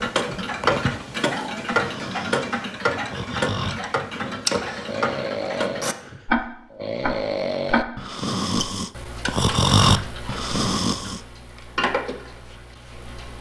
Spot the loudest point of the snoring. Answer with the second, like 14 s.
10 s.